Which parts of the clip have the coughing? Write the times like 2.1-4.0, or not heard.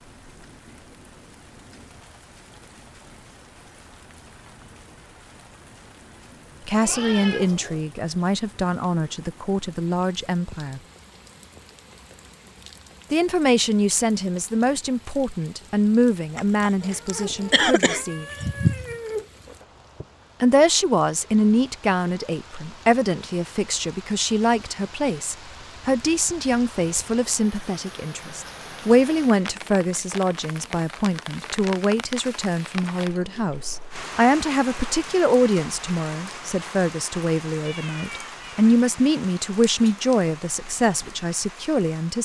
16.4-18.9.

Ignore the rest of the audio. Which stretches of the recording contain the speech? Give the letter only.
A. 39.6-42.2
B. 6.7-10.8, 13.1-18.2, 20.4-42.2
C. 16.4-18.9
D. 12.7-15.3
B.